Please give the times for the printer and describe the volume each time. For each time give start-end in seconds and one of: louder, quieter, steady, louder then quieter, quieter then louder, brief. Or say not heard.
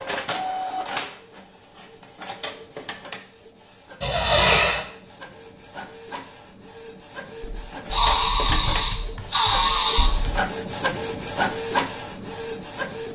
0.0-13.1 quieter then louder.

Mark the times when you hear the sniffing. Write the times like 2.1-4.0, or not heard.
4.0-4.8, 7.9-10.1.